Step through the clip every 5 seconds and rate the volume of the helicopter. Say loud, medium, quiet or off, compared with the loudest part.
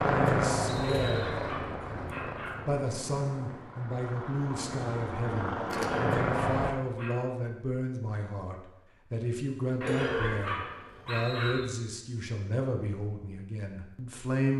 loud, loud, off.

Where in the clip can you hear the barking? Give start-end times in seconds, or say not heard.
0.8-2.6, 5.7-7.2, 9.8-11.6.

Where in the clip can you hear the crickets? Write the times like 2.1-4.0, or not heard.
not heard.